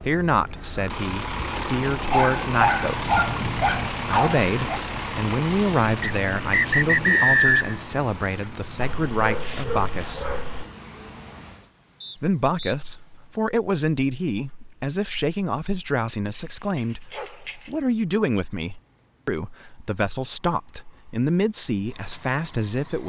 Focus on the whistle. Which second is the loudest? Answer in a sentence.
The loudest moment of the whistle is at 7 seconds.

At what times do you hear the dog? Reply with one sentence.
You can hear the dog from 2.1 to 4.8 s, from 8.8 to 10.7 s and from 16.2 to 17.8 s.